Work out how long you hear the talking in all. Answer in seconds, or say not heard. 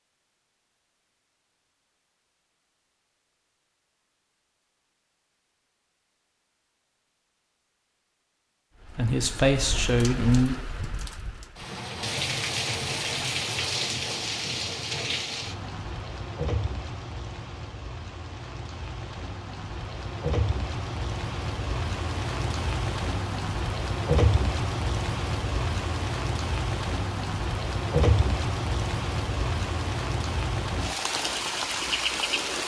2 s.